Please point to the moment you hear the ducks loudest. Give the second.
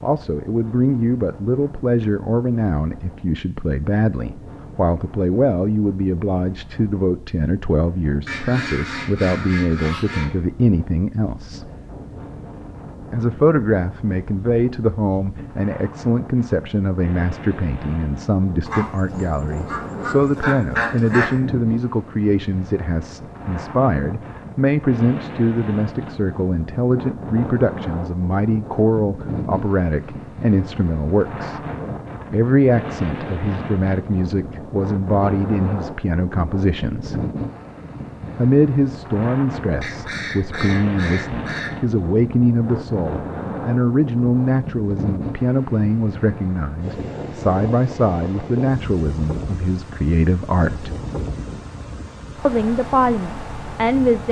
21 s.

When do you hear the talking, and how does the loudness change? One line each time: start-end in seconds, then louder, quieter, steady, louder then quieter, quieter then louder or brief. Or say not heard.
0.0-11.7 steady
13.1-31.6 steady
32.3-37.2 steady
38.4-50.9 steady
52.5-54.2 brief.